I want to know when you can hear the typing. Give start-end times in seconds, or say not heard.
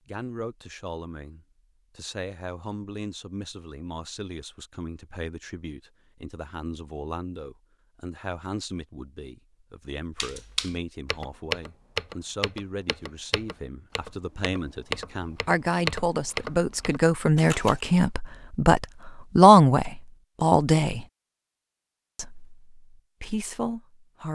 10.2-17.8.